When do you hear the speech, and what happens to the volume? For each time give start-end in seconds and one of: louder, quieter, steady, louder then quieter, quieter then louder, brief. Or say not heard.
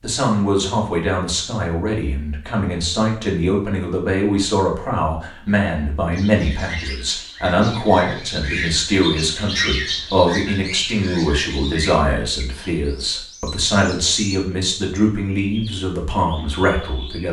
0.0-17.2 steady.